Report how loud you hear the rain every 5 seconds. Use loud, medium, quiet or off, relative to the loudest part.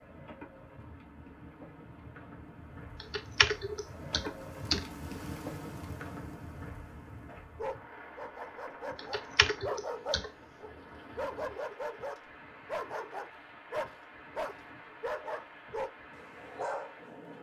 loud, loud, medium, medium.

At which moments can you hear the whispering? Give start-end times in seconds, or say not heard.
not heard.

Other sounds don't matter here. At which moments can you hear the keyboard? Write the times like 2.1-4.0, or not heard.
3.0-4.8, 8.9-10.3.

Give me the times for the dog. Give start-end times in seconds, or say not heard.
7.5-17.1.